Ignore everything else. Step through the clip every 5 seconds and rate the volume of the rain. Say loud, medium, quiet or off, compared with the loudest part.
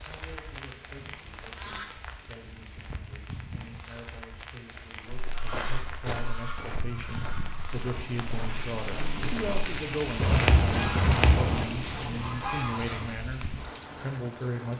medium, loud, loud.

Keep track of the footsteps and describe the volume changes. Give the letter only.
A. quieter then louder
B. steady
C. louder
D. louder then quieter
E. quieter
A.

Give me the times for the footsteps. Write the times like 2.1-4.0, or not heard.
5.0-11.7.